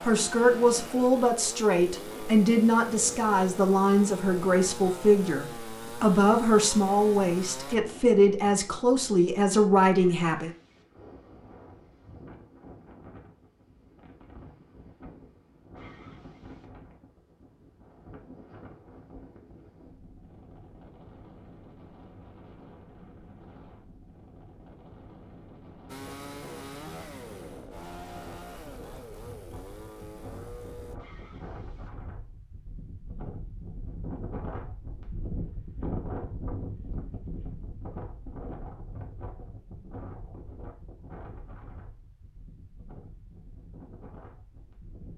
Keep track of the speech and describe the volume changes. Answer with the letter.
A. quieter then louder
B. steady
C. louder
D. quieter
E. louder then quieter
B.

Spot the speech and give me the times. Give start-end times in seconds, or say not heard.
0.0-10.5.